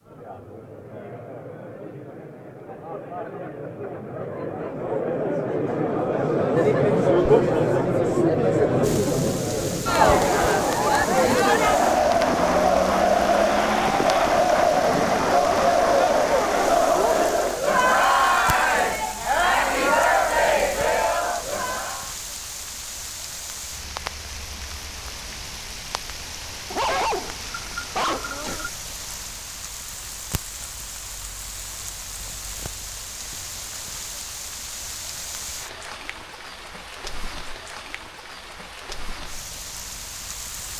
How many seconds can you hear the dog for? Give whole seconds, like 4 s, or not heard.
2 s.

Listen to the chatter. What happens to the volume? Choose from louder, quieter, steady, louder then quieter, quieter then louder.
louder.